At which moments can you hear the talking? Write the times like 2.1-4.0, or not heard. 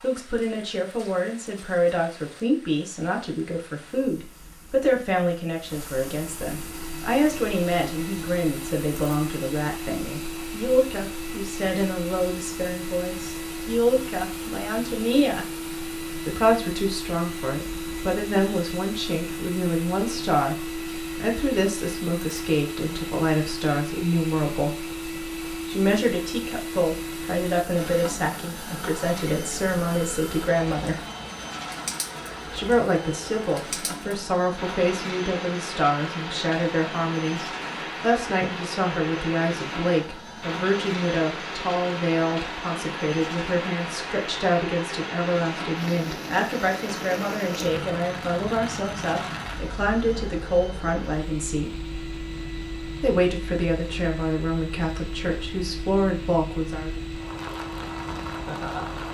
0.0-15.4, 16.1-24.8, 25.6-31.1, 32.5-51.7, 53.0-56.9.